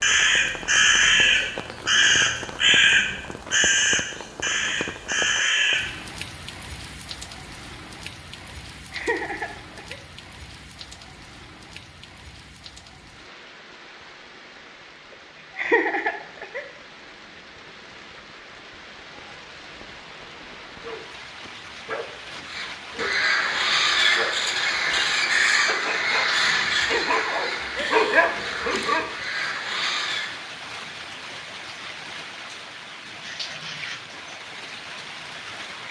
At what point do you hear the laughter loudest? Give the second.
16 s.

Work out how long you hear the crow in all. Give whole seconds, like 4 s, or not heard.
14 s.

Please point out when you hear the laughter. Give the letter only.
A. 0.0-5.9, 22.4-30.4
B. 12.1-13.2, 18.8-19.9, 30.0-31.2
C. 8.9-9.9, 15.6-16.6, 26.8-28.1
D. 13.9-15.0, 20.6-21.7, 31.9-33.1
C.